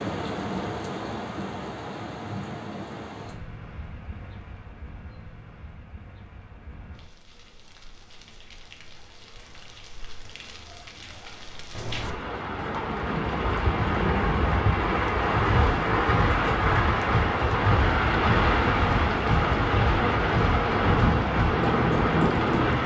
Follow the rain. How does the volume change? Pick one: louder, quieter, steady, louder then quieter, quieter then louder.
quieter then louder.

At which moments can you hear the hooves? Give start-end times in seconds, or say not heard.
15.3-22.8.